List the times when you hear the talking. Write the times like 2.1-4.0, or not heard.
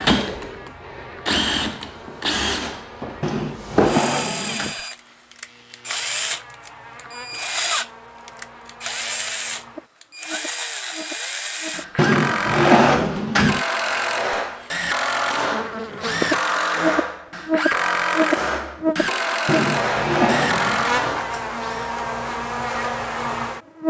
not heard.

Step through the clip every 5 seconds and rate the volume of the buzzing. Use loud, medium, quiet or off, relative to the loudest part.
quiet, quiet, quiet, loud, loud.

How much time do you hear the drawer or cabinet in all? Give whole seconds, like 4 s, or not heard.
5 s.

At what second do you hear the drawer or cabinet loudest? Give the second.
13 s.